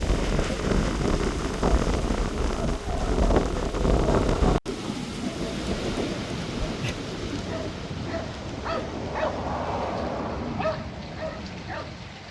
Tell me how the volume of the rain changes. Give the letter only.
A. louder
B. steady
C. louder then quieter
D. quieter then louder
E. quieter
E.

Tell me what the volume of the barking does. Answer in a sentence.
The loudness of the barking goes up, then down.